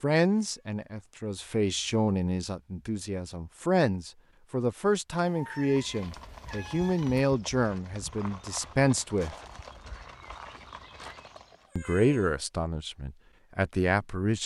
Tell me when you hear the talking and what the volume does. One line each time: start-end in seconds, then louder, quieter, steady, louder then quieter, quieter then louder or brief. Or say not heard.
0.0-9.3 steady
11.8-14.4 brief.